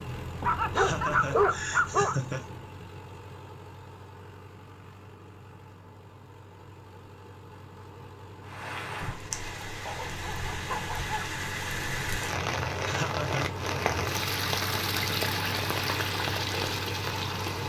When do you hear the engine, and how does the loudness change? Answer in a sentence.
The engine can be heard from 0.0 to 17.6 s, getting quieter then louder.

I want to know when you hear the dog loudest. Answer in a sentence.
The volume of the dog peaks at 1 second.